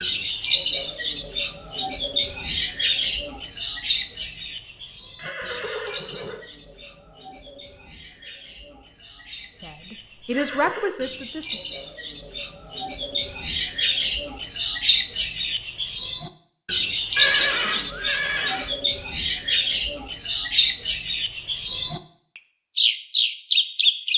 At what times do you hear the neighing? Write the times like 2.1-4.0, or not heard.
5.2-6.4, 10.3-10.9, 17.1-18.7.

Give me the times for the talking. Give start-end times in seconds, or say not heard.
9.6-11.6.